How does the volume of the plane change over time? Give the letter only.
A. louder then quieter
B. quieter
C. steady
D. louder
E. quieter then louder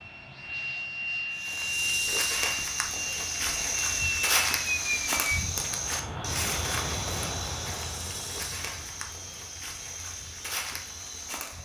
B.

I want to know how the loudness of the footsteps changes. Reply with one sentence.
The volume of the footsteps goes down.